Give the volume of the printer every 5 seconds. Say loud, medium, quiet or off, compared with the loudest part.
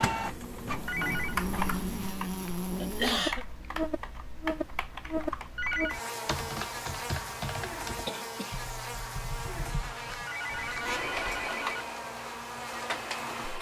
loud, off, loud.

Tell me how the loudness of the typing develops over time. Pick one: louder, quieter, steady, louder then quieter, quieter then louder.
quieter.